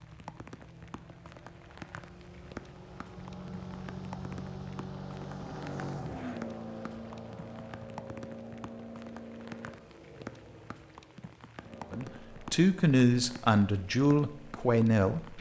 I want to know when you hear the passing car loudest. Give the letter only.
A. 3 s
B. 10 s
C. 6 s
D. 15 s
C.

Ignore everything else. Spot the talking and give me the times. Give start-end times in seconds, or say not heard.
11.9-15.3.